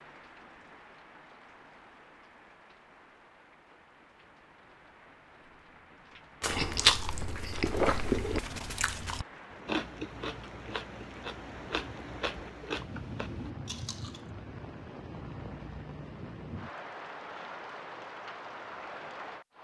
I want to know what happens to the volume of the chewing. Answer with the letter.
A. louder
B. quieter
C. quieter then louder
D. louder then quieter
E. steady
B.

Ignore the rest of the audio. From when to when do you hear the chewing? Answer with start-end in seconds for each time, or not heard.
6.4-14.2.